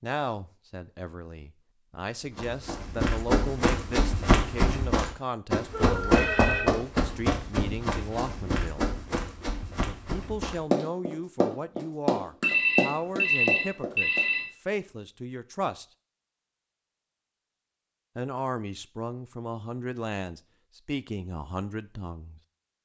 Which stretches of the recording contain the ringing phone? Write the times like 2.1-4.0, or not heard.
5.7-6.8, 12.4-14.4.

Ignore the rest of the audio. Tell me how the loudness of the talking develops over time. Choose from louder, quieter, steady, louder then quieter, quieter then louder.
steady.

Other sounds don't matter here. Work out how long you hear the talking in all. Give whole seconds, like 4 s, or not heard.
19 s.